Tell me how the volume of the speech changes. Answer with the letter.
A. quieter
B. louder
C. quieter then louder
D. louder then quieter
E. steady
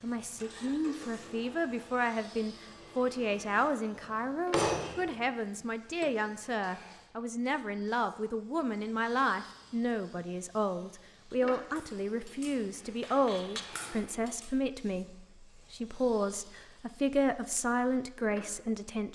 E.